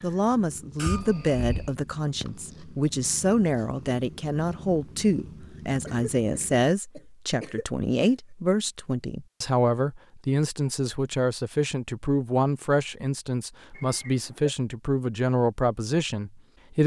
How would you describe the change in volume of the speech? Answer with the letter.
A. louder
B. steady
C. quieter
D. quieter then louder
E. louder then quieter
B.